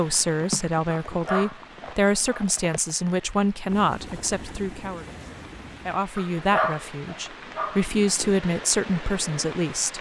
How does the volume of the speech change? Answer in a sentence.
The volume of the speech stays about the same.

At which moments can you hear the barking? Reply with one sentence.
The barking can be heard from 0.9 to 2.4 s and from 6.2 to 8.2 s.